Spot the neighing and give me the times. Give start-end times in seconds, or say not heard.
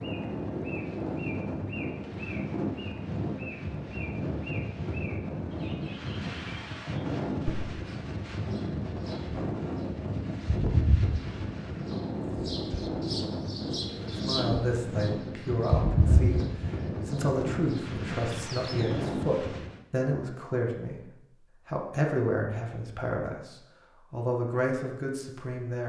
not heard.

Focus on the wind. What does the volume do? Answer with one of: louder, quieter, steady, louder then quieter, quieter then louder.
steady.